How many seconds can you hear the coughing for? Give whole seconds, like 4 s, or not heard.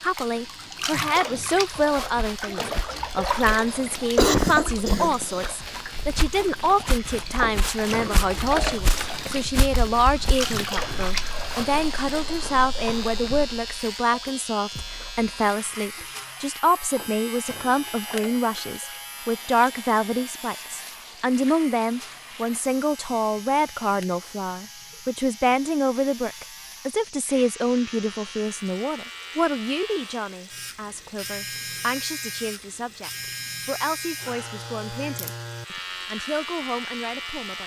2 s.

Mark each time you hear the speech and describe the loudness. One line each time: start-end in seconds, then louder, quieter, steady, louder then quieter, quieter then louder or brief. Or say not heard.
0.0-37.6 quieter.